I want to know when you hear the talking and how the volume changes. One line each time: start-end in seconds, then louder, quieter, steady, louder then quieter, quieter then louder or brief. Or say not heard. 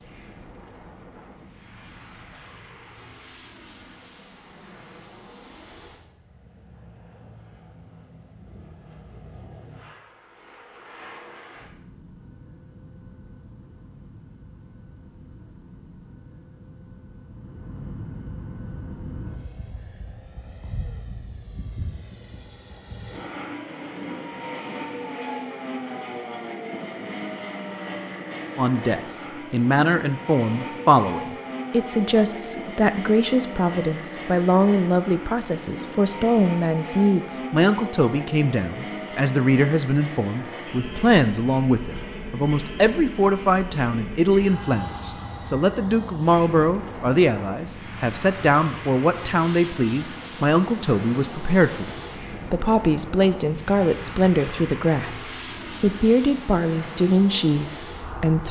28.6-58.4 steady.